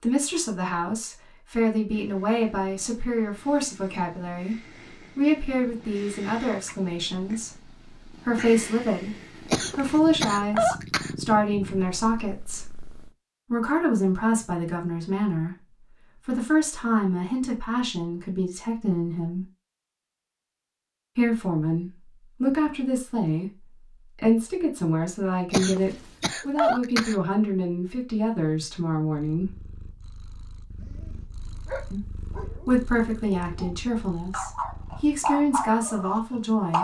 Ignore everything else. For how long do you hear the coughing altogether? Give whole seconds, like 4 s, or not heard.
3 s.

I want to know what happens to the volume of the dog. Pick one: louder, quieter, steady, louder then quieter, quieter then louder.
quieter then louder.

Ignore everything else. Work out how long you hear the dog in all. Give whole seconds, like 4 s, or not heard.
6 s.